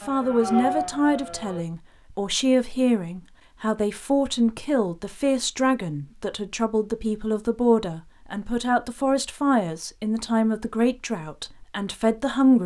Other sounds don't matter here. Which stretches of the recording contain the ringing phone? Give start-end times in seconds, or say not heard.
not heard.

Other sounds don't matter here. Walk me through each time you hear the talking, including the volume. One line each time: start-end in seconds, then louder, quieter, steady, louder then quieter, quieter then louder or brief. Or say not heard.
0.0-12.6 steady.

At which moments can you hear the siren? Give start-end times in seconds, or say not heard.
0.0-1.6.